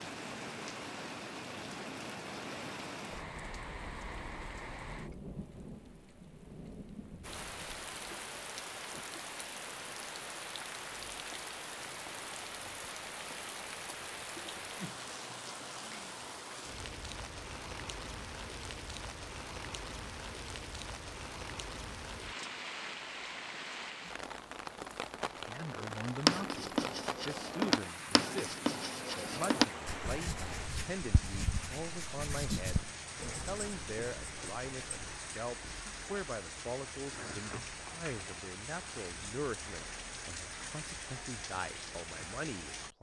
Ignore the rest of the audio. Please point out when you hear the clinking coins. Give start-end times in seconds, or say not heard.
not heard.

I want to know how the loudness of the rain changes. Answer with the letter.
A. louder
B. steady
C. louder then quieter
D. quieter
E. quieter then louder
B.